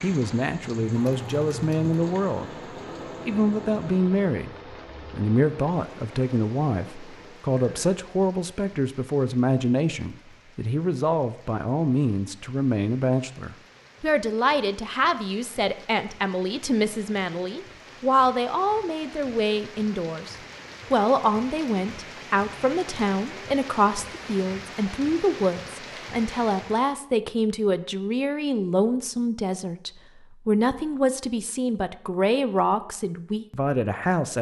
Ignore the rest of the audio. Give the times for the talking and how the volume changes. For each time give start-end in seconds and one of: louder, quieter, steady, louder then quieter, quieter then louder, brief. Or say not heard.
0.0-2.5 brief
3.2-34.3 steady.